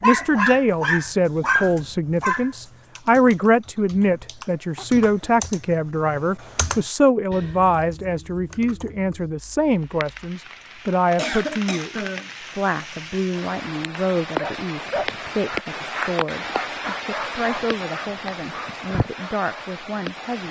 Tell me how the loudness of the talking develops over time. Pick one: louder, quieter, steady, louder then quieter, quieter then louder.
quieter.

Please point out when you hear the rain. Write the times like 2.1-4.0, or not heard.
9.8-20.4.